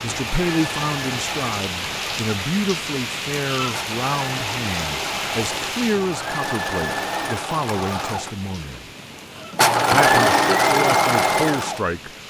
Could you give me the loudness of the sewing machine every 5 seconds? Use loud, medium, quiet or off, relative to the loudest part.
quiet, medium, loud.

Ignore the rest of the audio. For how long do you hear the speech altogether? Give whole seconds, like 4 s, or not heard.
11 s.